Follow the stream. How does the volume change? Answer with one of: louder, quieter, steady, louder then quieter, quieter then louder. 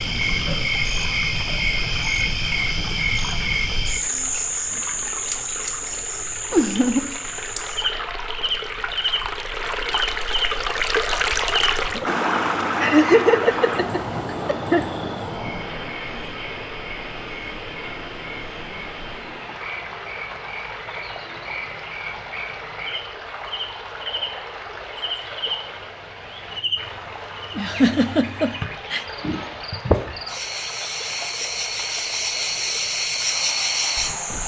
louder then quieter.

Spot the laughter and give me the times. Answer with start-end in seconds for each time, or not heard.
6.5-7.1, 12.8-14.9, 27.6-29.1.